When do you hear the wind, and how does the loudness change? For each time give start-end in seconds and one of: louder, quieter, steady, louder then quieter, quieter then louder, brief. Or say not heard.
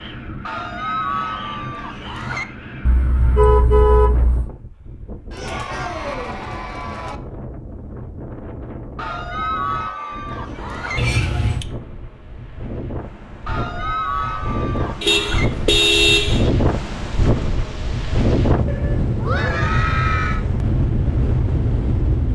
0.0-22.3 louder.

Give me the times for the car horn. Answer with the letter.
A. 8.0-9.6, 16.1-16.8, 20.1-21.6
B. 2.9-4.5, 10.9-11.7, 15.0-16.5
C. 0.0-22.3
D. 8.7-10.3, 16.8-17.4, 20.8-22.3
B.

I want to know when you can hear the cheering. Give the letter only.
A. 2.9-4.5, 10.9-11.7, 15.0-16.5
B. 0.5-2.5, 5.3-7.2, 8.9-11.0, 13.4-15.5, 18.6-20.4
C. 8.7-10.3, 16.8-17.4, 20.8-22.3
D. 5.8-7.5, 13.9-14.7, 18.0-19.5
B.